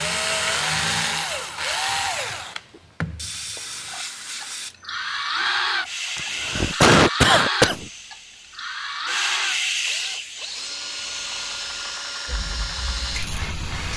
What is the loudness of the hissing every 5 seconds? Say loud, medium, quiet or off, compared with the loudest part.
medium, loud, medium.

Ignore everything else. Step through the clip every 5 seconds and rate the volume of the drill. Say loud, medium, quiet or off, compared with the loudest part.
loud, loud, medium.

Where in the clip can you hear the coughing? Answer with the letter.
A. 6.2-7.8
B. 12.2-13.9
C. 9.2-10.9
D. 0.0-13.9
A.